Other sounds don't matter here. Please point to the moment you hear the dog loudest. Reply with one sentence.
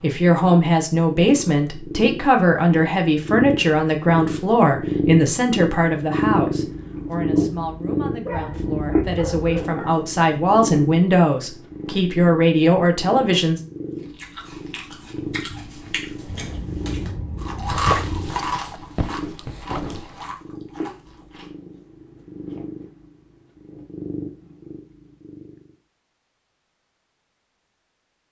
The volume of the dog peaks at 18 seconds.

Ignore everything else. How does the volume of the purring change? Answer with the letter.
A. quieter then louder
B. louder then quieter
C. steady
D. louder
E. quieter
E.